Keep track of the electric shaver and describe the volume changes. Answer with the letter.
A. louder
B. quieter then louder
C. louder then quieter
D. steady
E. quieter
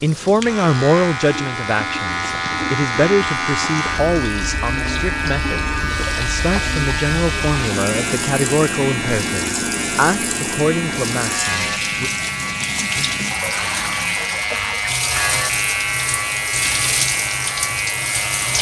D.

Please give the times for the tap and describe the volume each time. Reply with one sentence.
The tap can be heard from 0.0 to 18.5 s, getting louder.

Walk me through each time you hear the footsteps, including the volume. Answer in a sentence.
The footsteps can't be heard in this clip.